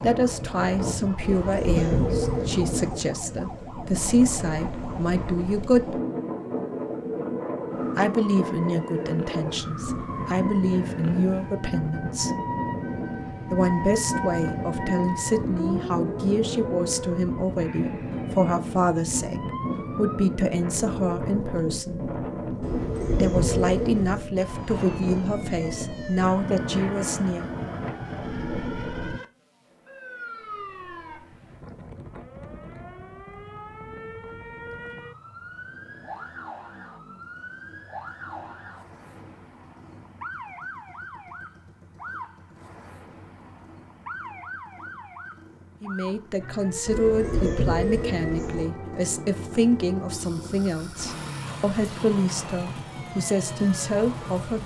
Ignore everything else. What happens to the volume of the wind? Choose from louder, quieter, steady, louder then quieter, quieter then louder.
steady.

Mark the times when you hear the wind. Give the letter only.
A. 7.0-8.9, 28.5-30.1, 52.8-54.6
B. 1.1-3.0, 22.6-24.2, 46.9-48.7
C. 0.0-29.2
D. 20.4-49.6
C.